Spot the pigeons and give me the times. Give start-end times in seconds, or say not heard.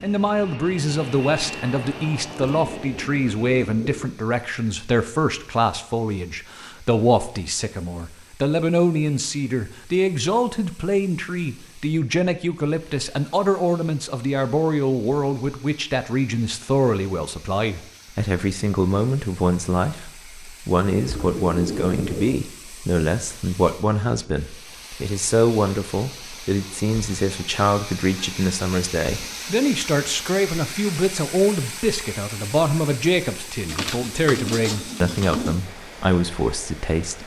2.5-4.2, 20.9-22.4, 33.6-35.5.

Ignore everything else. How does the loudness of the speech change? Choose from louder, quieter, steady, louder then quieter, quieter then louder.
steady.